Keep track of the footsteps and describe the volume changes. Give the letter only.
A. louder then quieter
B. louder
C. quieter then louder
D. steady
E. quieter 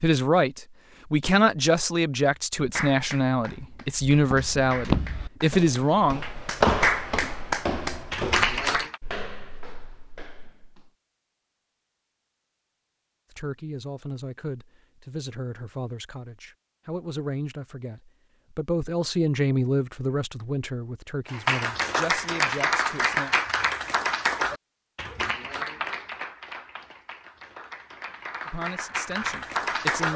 E.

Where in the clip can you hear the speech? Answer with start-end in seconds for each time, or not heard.
0.0-6.2, 13.3-23.4, 28.4-30.1.